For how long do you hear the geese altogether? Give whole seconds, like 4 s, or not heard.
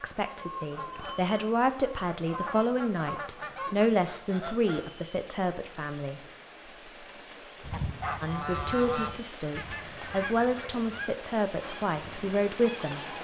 10 s.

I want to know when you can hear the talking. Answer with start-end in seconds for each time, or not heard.
0.0-6.2, 8.2-13.0.